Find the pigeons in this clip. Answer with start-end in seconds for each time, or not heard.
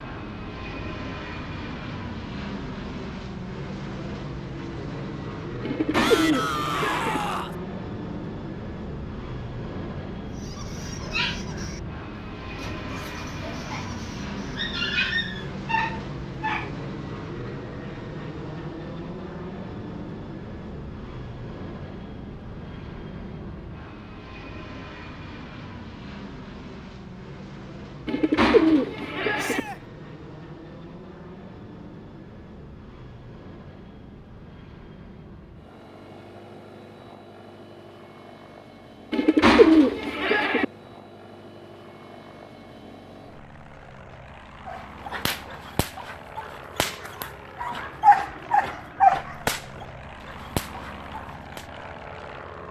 5.6-7.2, 28.1-29.6, 39.1-40.6.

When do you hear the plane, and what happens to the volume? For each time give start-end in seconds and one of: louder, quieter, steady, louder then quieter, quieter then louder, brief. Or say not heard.
0.0-52.6 quieter.